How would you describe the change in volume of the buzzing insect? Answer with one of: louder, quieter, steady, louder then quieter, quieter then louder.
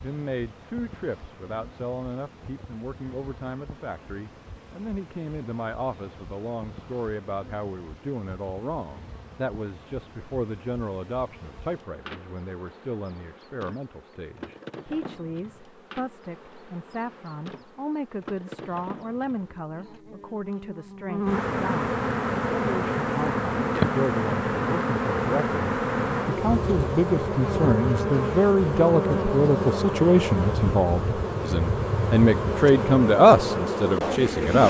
louder.